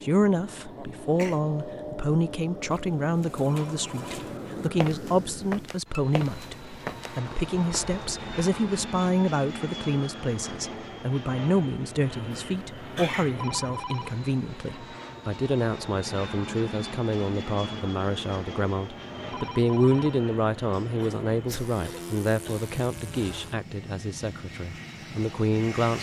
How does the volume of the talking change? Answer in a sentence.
The loudness of the talking stays about the same.